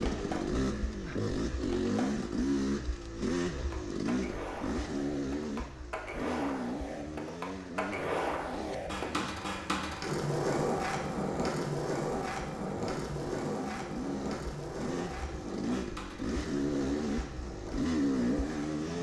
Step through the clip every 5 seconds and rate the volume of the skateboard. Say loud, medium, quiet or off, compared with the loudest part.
medium, loud, loud, medium.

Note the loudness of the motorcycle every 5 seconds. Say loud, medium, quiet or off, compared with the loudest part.
loud, medium, medium, loud.